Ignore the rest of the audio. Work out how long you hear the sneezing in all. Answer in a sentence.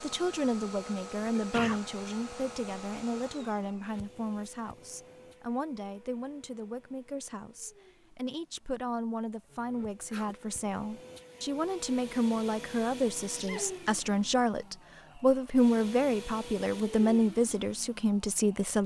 The sneezing can be heard for 2 seconds in total.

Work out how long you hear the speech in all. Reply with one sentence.
You can hear the speech for 19 seconds altogether.